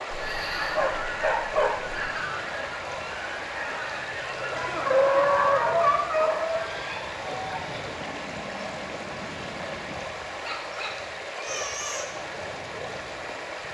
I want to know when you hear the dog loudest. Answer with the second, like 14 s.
5 s.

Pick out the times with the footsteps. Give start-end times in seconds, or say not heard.
not heard.